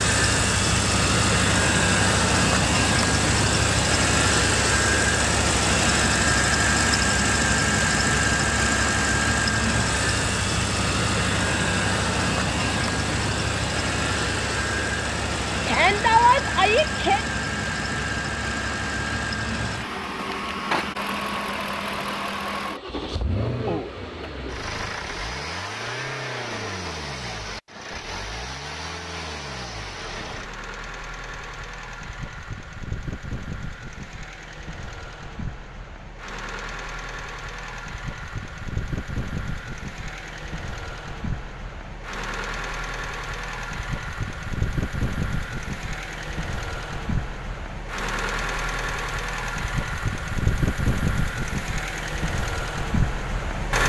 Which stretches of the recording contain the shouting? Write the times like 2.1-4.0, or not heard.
15.7-17.2.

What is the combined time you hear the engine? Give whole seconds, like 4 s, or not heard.
54 s.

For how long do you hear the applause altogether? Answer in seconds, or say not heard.
not heard.